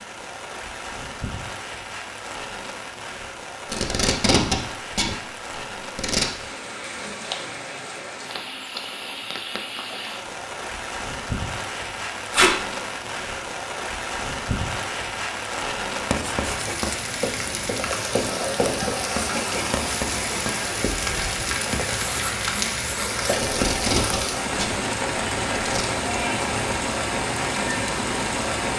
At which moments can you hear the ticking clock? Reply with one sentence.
You can't hear the ticking clock here.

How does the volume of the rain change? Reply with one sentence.
The loudness of the rain goes up.